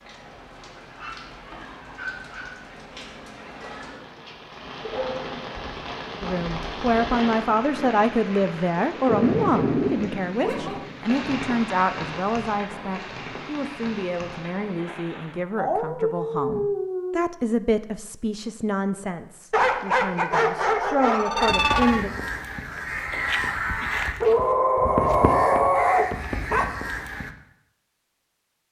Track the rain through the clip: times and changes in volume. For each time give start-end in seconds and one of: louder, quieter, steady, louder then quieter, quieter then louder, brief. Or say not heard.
0.0-15.4 louder then quieter.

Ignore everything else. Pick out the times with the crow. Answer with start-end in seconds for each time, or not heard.
21.4-27.3.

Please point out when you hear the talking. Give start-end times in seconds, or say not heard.
6.2-22.1.